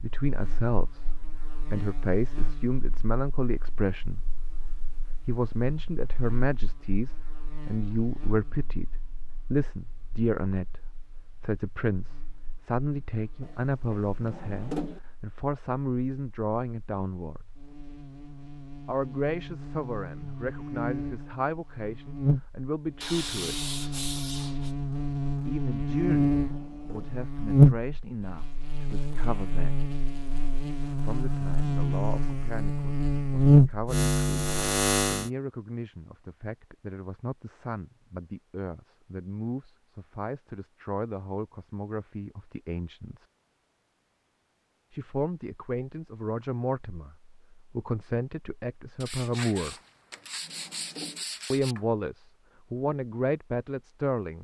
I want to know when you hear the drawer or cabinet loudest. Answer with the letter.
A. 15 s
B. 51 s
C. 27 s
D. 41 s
A.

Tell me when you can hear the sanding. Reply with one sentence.
You can hear the sanding from 23.0 to 24.8 s and from 49.0 to 51.9 s.